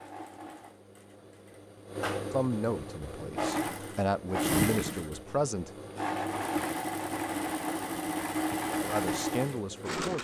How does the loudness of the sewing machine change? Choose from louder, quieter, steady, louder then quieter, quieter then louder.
louder.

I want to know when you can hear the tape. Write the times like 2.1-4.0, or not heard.
not heard.